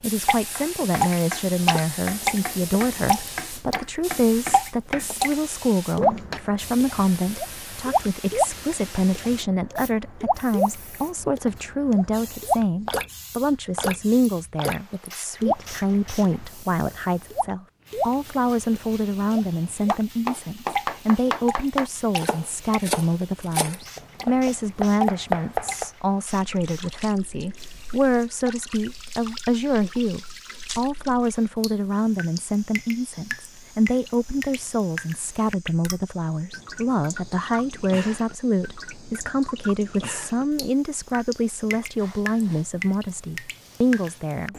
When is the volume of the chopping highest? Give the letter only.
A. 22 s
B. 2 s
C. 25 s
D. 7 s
C.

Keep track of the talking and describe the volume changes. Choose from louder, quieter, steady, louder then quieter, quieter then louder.
steady.